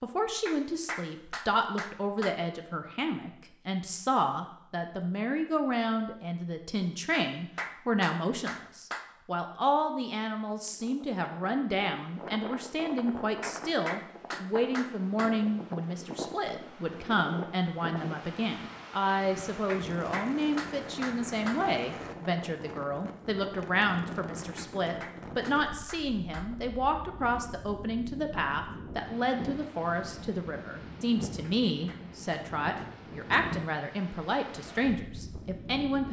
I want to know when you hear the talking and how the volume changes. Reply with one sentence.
You can hear the talking from 0.0 to 36.0 s, at a steady volume.